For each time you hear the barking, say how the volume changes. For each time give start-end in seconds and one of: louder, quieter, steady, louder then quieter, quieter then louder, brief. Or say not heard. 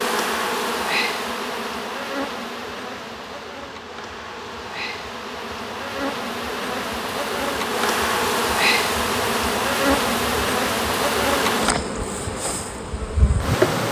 not heard.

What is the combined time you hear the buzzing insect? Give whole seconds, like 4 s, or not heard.
14 s.